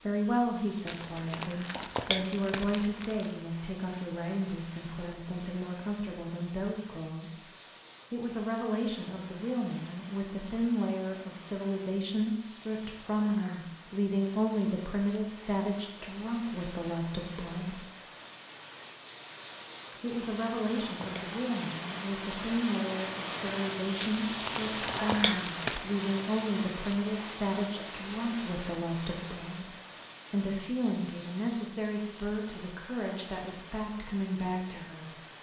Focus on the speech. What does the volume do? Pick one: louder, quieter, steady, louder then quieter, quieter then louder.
steady.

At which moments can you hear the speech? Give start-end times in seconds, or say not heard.
0.0-7.5, 8.1-17.8, 20.0-29.7, 30.3-35.2.